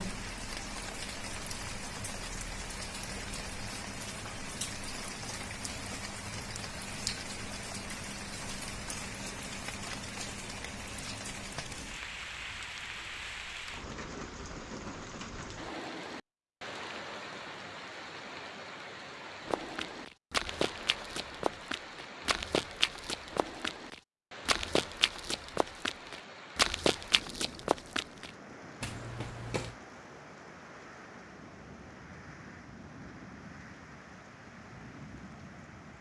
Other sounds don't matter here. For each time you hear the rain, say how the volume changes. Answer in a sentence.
The rain can be heard from 0.0 to 35.9 s, getting quieter.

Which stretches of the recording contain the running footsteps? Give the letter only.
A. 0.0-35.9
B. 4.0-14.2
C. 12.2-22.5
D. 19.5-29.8
D.